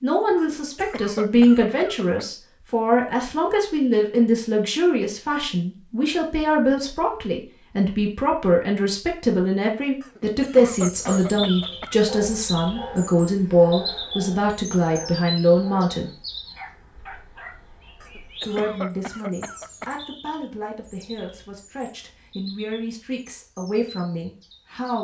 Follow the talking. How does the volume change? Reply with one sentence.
The loudness of the talking goes down.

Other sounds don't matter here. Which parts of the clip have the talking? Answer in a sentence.
You can hear the talking from 0.0 to 16.1 s and from 18.4 to 24.9 s.